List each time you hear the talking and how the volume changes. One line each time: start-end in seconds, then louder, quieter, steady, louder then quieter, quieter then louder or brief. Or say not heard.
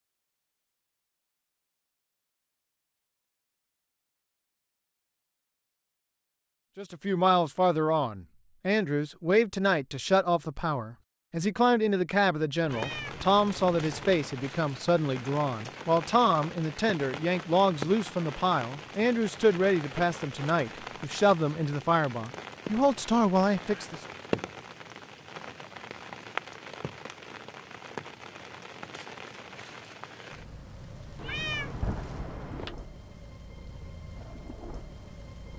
6.8-24.0 steady.